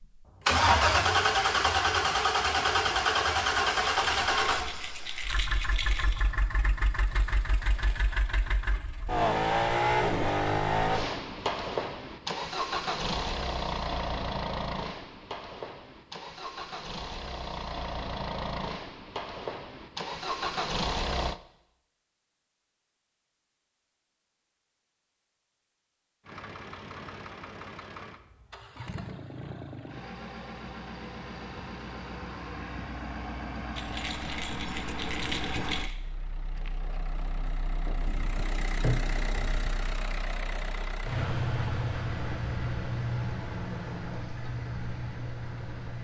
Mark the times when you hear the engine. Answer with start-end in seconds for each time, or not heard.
0.0-21.4, 26.2-46.0.